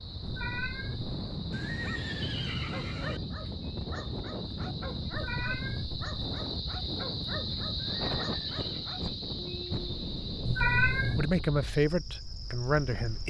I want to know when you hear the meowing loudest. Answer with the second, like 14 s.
11 s.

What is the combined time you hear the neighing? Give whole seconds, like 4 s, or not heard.
3 s.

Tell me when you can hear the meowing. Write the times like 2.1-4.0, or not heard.
0.2-1.1, 5.1-6.0, 10.4-11.3.